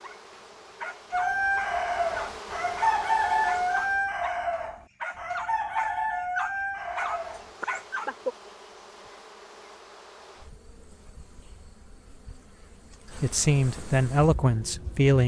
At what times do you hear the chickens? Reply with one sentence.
The chickens can be heard from 1.1 to 8.3 s.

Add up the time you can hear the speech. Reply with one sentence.
You can hear the speech for 2 seconds altogether.